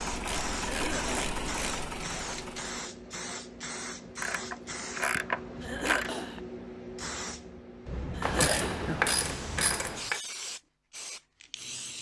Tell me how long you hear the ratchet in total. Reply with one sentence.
The ratchet can be heard for 6 seconds in total.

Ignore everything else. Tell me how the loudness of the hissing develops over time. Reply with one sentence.
The volume of the hissing stays about the same.